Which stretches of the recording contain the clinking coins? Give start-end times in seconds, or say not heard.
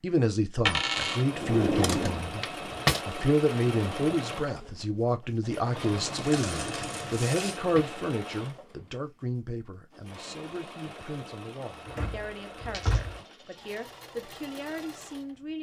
0.7-1.2, 6.0-7.6, 12.7-14.0.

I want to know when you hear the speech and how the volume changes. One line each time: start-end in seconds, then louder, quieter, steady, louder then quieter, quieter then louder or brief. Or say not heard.
0.0-15.5 quieter.